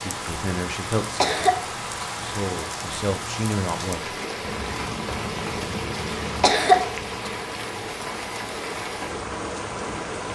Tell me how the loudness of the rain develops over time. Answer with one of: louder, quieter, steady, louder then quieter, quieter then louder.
steady.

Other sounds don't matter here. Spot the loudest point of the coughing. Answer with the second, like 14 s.
7 s.